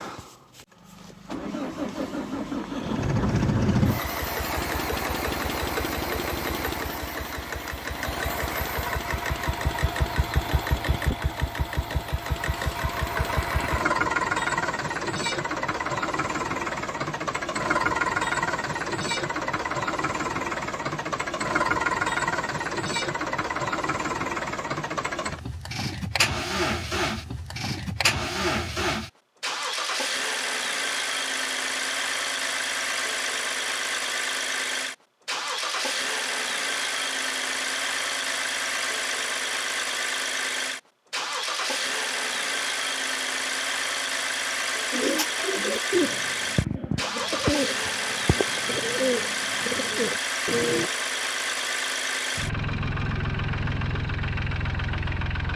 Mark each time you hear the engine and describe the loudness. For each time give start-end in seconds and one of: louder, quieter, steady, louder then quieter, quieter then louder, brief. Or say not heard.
0.0-55.5 steady.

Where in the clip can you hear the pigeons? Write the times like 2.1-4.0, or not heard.
44.9-50.9.